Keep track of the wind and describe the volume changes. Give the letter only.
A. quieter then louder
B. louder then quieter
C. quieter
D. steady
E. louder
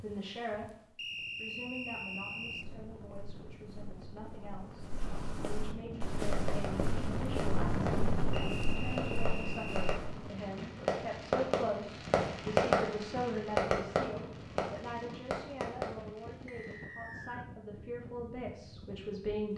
B.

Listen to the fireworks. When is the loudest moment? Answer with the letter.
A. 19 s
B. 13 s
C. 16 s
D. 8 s
B.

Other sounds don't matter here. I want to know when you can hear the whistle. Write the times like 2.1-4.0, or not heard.
0.9-2.6, 8.3-10.0, 16.4-17.5.